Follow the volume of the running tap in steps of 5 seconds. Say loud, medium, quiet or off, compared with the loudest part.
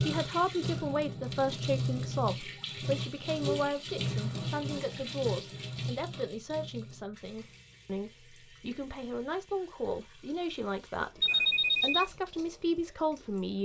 loud, medium, quiet.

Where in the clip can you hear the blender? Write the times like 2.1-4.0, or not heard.
not heard.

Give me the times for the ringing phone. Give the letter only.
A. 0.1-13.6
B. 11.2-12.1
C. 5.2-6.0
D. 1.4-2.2
B.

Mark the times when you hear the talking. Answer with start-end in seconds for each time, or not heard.
0.1-13.6.